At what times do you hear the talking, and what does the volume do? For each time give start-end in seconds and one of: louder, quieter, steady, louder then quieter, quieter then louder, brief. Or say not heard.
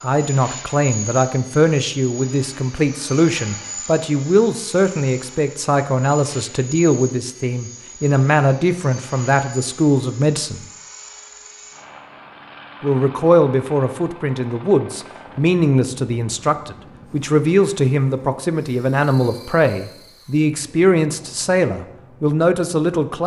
0.0-10.7 steady
12.8-23.2 steady.